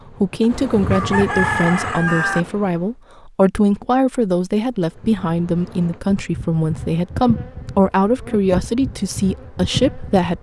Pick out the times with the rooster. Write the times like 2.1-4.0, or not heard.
0.4-2.4.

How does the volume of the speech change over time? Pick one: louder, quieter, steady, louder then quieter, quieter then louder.
steady.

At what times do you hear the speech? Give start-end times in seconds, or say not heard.
0.2-10.3.